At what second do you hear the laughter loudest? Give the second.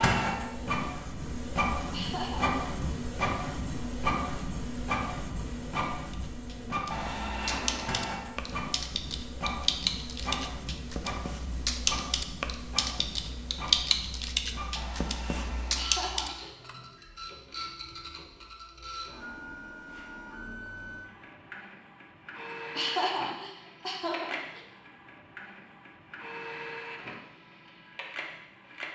23 s.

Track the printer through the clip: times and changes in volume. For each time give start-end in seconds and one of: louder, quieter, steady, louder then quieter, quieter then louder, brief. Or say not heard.
0.0-28.9 quieter.